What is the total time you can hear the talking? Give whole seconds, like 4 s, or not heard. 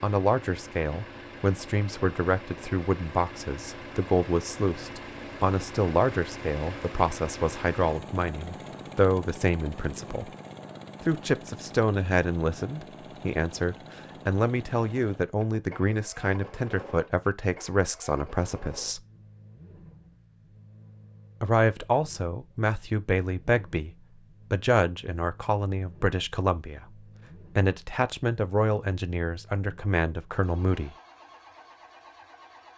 28 s.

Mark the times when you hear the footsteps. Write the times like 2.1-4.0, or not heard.
not heard.